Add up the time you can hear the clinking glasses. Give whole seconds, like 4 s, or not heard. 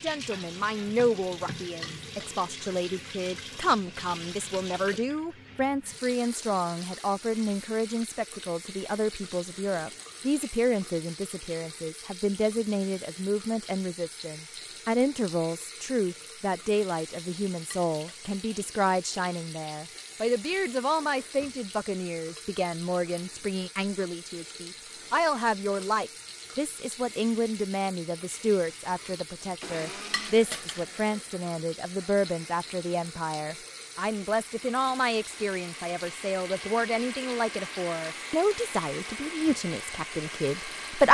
2 s.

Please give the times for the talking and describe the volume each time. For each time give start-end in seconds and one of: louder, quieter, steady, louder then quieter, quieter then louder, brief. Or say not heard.
0.0-41.0 steady.